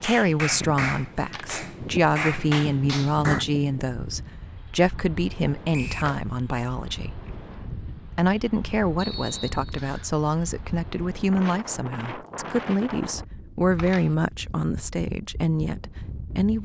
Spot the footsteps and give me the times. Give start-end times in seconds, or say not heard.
not heard.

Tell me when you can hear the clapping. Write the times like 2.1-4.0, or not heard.
0.0-3.5.